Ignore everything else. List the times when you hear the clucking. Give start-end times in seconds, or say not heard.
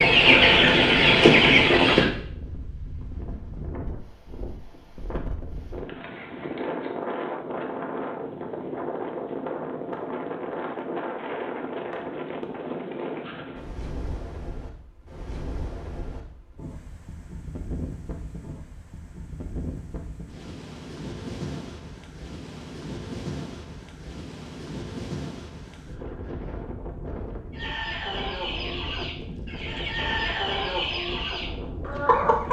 0.0-2.0, 27.5-32.4.